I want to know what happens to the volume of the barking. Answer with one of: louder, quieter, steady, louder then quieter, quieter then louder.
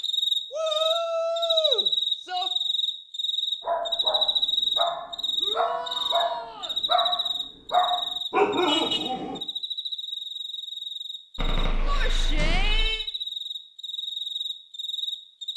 louder.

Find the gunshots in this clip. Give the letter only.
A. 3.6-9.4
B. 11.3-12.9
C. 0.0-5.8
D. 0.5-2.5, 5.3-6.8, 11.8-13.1
B.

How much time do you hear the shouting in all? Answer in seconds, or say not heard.
5 s.